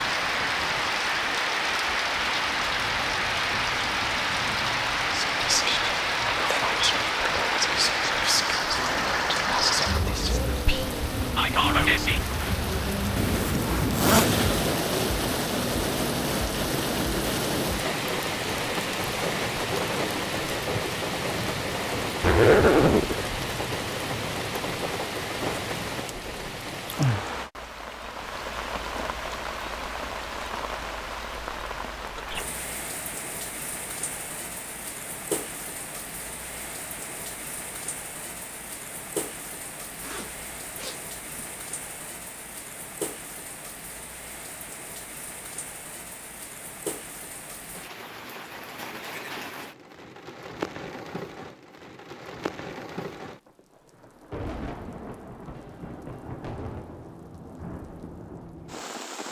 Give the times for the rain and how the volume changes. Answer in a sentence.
The rain can be heard from 0.0 to 59.2 s, getting quieter.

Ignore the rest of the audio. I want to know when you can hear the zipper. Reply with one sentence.
The zipper can be heard from 13.2 to 14.7 s, from 22.2 to 23.1 s and from 40.0 to 41.5 s.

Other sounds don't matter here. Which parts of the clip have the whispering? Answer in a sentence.
The whispering can be heard from 5.0 to 12.3 s.